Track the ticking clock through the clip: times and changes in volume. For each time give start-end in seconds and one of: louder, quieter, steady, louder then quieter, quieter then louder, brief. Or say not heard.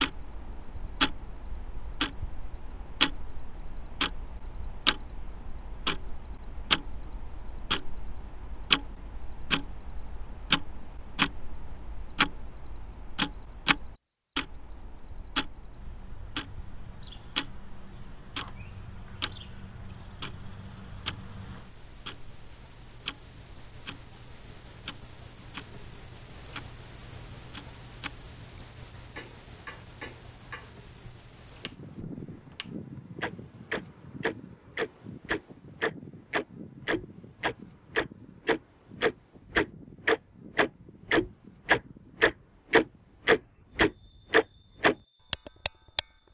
0.0-46.0 quieter then louder.